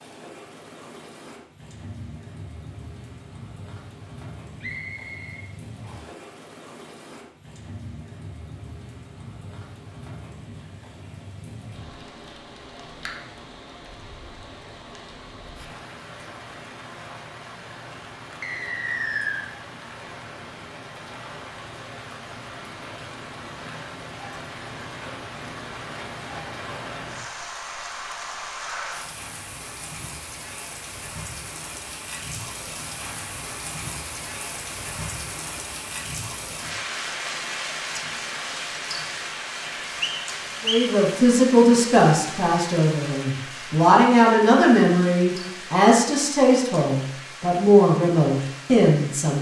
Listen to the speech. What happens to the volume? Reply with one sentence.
The volume of the speech stays about the same.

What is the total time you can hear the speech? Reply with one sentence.
You can hear the speech for 9 seconds altogether.